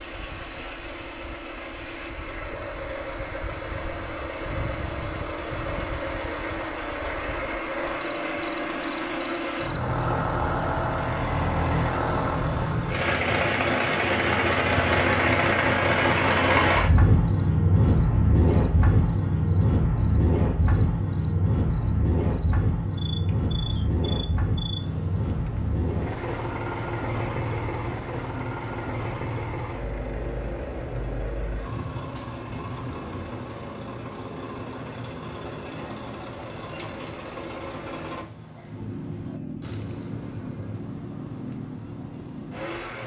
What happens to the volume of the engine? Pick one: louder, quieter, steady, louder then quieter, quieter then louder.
louder then quieter.